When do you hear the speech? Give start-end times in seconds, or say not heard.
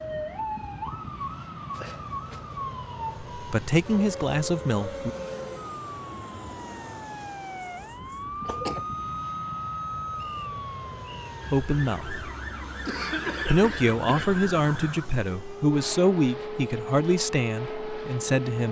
3.4-5.1, 11.5-12.2, 13.4-18.6.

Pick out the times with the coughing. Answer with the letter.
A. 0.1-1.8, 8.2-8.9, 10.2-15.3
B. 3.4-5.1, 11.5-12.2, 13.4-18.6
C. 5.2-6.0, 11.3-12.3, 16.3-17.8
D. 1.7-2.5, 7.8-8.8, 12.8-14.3
D.